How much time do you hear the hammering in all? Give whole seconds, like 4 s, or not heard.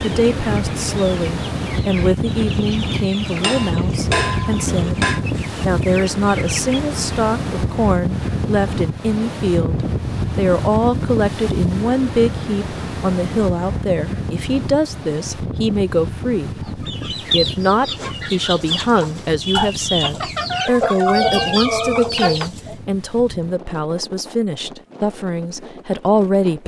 2 s.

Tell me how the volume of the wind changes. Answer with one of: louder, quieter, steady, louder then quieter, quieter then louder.
quieter.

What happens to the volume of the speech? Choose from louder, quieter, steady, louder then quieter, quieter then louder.
steady.